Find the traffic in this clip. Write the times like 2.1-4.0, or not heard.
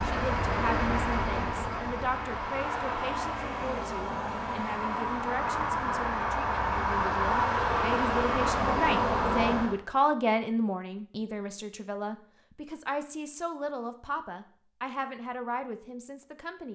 0.0-9.8.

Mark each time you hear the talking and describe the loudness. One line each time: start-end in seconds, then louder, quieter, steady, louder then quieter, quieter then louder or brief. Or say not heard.
0.0-16.7 louder then quieter.